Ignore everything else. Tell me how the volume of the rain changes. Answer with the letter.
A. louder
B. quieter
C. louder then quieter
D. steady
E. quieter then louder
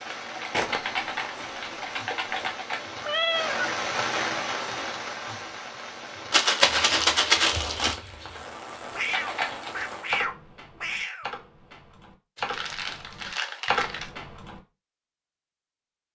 C.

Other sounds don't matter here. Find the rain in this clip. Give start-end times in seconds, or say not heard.
0.0-10.2.